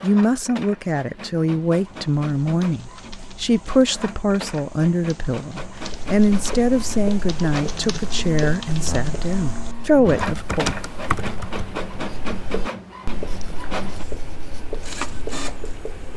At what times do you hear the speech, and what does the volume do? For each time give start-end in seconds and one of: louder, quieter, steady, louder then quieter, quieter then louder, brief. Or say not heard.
0.0-10.7 steady.